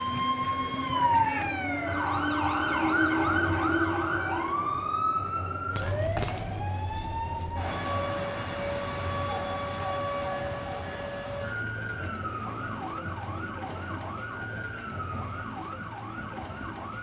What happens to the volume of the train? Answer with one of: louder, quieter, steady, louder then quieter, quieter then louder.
quieter.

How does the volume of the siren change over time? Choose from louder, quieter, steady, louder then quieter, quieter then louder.
quieter.